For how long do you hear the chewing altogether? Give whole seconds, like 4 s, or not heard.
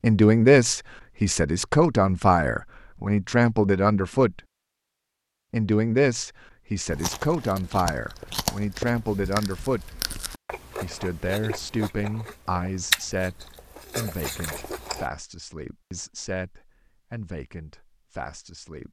8 s.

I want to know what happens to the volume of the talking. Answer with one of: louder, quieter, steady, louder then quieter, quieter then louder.
quieter.